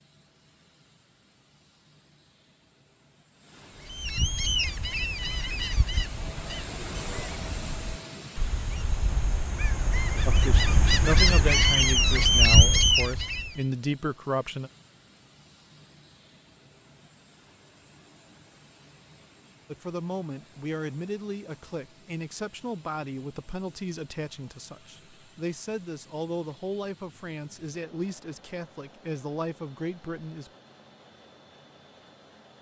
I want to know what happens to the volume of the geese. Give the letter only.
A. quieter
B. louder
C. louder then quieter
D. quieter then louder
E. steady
D.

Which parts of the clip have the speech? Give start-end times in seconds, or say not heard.
10.2-14.7, 19.7-30.5.